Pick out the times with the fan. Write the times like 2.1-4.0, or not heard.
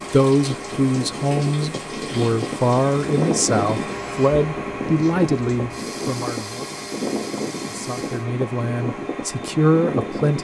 0.0-10.3.